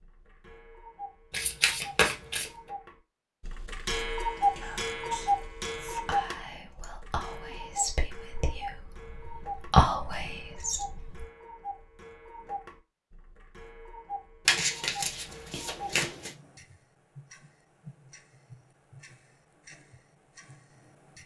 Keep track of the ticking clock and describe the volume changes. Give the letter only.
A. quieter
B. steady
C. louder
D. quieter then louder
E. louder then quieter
A.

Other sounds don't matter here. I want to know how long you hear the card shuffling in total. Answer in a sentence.
You can hear the card shuffling for 3 seconds altogether.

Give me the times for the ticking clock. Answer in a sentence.
You can hear the ticking clock from 0.0 to 21.2 s.